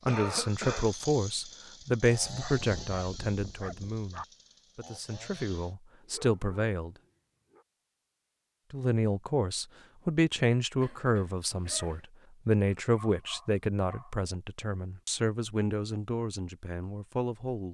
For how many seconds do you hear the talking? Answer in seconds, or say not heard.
16 s.